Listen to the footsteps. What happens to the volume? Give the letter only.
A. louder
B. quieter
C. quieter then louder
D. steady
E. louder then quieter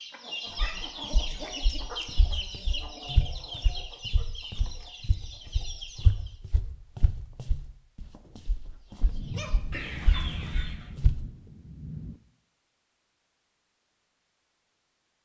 E.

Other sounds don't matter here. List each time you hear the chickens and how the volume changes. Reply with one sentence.
You can hear the chickens from 0.0 to 6.4 s, getting quieter; and briefly from 8.7 to 10.9 s.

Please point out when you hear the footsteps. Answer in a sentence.
You can hear the footsteps from 0.6 to 11.2 s.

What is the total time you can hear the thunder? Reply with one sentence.
The thunder can be heard for 3 seconds in total.